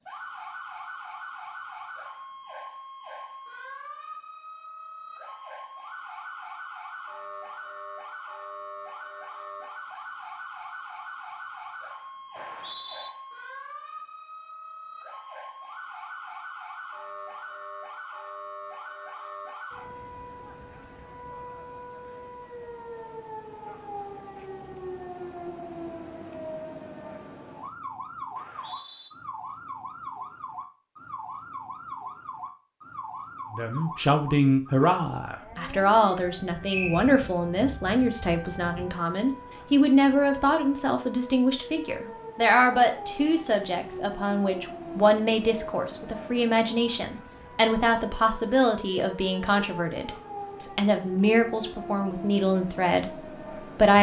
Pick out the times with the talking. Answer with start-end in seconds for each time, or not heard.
33.5-53.9.